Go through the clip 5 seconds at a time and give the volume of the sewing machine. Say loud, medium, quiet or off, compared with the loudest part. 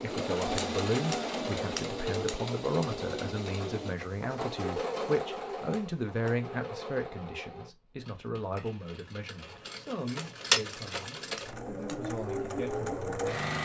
loud, medium, loud.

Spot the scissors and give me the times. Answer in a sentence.
You can hear the scissors from 0.6 to 2.4 s, from 5.7 to 6.3 s and from 10.2 to 12.0 s.